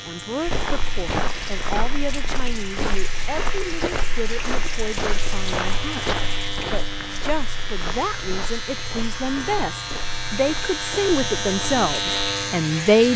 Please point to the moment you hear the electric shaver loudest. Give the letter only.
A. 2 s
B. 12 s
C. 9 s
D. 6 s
B.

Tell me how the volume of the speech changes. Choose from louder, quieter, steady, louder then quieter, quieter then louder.
louder.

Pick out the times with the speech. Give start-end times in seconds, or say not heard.
0.0-13.1.